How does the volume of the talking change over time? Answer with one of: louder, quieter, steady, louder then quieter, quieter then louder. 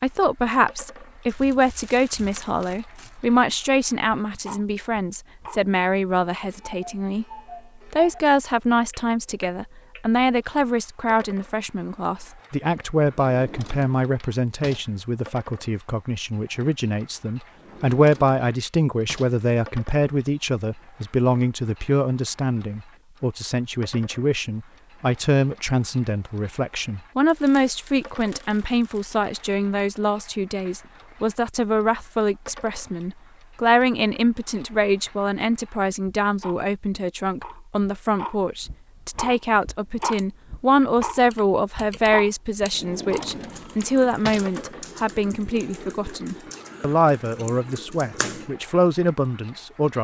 steady.